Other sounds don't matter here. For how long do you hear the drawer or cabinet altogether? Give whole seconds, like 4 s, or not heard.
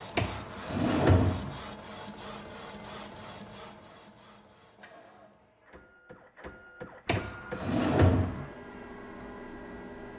3 s.